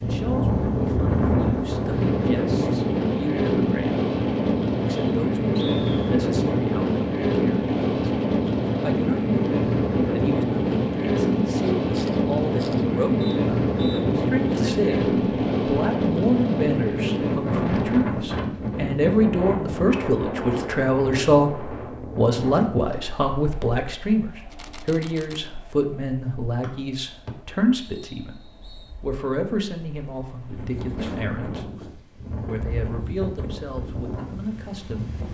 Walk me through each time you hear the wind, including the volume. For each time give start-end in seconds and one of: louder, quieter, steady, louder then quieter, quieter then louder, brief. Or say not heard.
0.0-35.2 quieter.